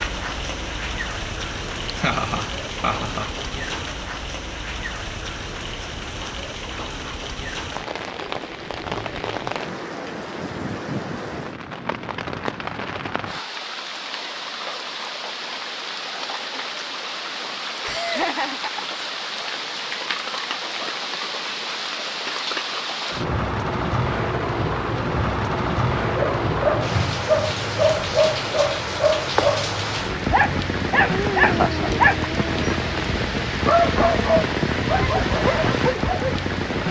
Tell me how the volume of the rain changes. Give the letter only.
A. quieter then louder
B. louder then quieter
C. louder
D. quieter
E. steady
C.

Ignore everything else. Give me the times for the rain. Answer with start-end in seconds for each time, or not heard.
0.0-36.8.